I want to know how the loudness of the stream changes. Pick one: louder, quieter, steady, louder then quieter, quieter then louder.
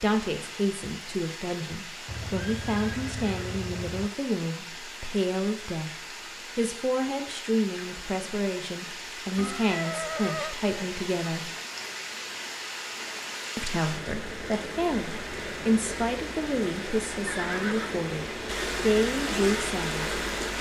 louder.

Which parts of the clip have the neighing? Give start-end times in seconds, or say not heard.
2.0-4.1, 9.3-10.6, 17.2-18.1.